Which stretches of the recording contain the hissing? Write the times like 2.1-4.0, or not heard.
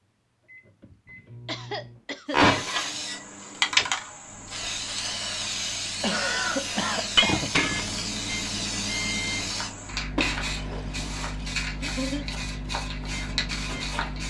2.4-14.2.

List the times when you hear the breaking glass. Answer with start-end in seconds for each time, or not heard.
2.3-3.0, 7.2-8.0, 10.2-11.7.